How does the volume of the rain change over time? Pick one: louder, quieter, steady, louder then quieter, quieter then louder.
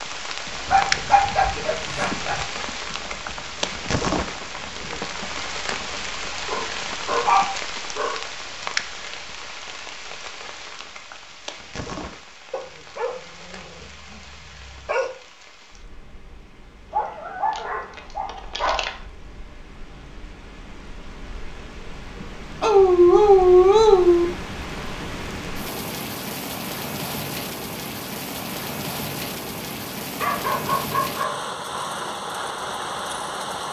quieter then louder.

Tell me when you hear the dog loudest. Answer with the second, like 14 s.
23 s.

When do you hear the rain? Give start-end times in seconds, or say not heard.
0.0-33.6.